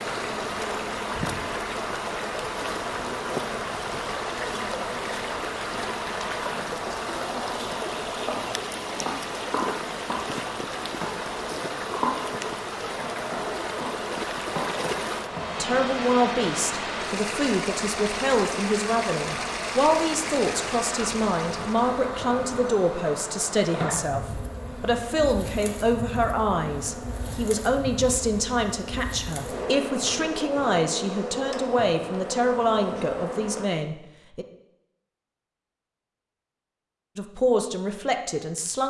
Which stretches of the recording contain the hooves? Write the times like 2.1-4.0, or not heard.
not heard.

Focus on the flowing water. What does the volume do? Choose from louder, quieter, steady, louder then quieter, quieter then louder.
steady.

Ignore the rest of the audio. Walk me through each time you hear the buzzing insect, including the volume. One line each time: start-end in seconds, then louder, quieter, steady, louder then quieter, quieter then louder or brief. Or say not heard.
0.0-33.6 steady.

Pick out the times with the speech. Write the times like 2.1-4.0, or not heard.
15.6-34.5, 37.1-38.8.